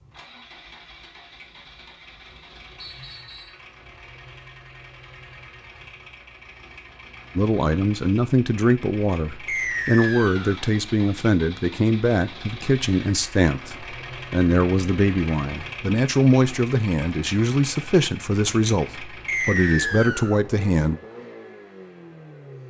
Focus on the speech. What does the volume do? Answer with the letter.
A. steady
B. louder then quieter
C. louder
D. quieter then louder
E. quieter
A.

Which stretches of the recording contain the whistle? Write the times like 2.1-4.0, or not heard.
2.8-3.6, 9.4-10.6, 19.2-20.4.